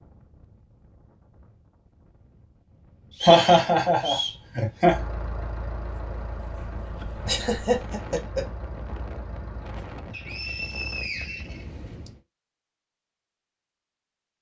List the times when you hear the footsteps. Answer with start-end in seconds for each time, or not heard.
not heard.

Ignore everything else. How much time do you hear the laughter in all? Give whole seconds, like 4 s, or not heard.
3 s.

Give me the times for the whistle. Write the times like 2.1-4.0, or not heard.
3.1-4.4, 10.1-12.1.